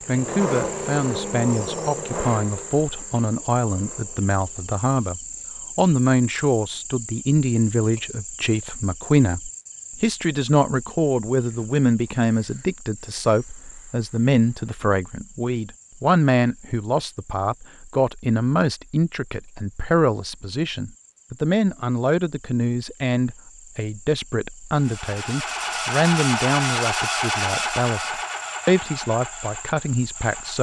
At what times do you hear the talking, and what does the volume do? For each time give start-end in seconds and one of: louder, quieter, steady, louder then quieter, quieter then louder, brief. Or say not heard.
0.1-30.5 steady.